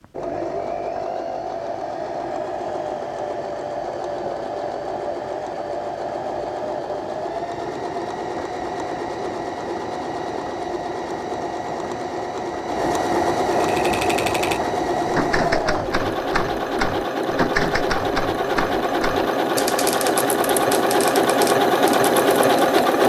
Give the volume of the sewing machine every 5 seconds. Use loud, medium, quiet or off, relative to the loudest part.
medium, medium, medium, medium, loud.